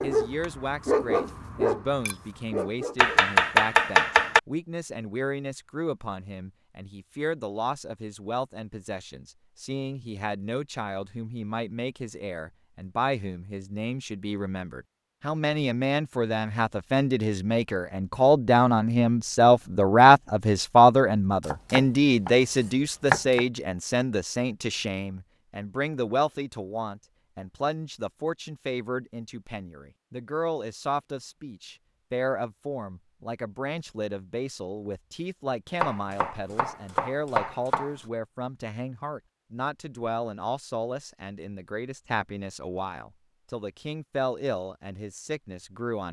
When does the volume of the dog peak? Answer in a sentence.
The volume of the dog peaks at 1 second.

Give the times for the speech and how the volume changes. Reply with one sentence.
You can hear the speech from 0.0 to 46.0 s, getting louder then quieter.